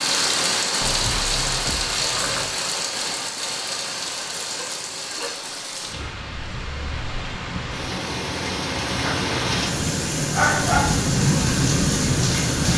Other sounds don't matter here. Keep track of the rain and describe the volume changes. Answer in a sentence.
The volume of the rain goes down, then up.